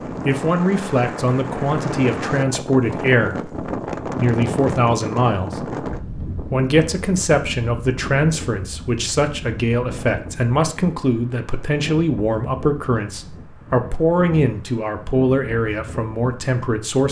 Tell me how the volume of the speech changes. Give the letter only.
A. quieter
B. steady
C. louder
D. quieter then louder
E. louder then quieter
B.